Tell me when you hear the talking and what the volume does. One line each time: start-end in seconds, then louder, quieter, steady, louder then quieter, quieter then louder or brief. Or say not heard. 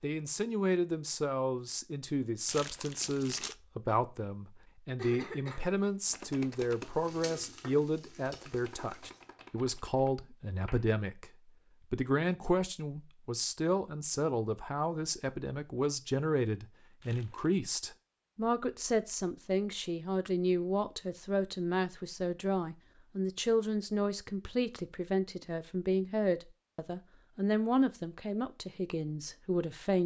0.0-11.3 steady
11.9-30.0 steady.